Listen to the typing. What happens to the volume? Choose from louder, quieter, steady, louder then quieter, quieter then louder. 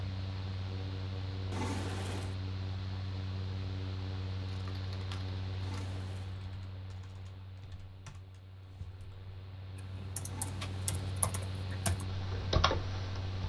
quieter then louder.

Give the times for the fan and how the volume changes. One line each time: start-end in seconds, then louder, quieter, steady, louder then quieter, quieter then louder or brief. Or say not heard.
0.0-13.4 quieter then louder.